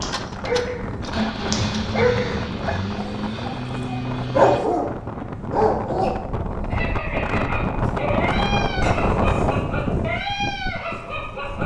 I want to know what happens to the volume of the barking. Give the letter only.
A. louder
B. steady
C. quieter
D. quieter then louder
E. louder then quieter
E.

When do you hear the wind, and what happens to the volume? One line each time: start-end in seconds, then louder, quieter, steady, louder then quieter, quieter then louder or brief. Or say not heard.
0.0-11.6 louder.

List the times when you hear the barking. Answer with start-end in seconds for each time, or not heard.
0.0-11.6.